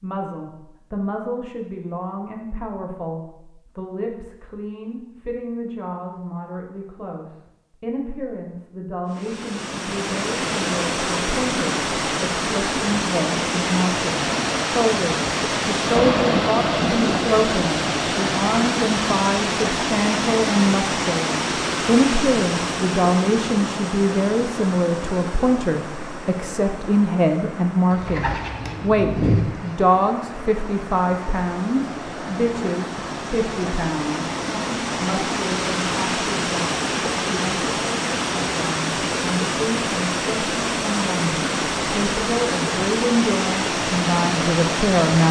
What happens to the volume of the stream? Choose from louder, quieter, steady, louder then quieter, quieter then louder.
quieter then louder.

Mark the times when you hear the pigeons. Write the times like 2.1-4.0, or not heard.
27.9-29.8.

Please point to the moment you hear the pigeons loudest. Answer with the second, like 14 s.
29 s.